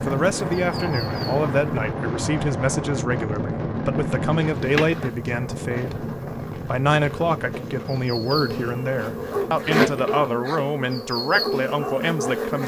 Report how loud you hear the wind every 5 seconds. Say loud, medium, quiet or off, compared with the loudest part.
loud, medium, off.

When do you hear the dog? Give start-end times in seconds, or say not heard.
9.3-10.7, 11.3-12.4.